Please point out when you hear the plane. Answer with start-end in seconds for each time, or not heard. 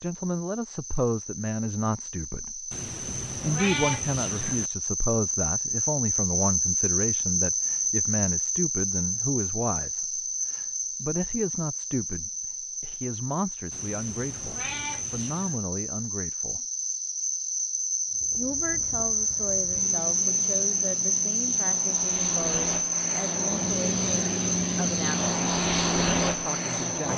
18.1-27.1.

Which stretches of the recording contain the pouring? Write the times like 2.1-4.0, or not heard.
not heard.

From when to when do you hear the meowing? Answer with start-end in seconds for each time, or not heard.
2.7-4.7, 13.7-15.6.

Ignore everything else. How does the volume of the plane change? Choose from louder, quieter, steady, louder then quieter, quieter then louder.
louder.